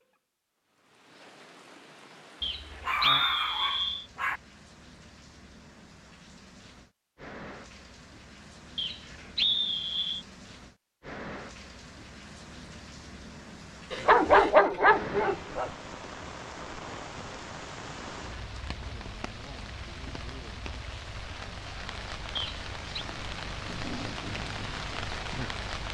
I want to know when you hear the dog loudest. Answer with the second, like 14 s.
14 s.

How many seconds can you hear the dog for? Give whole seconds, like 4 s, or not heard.
4 s.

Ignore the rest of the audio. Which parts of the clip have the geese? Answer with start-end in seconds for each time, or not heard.
not heard.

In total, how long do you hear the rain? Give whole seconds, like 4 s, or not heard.
26 s.